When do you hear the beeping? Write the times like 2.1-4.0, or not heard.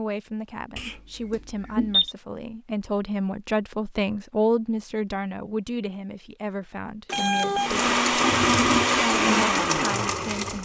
0.8-2.1, 7.0-7.8.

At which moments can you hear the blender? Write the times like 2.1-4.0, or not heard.
7.5-10.6.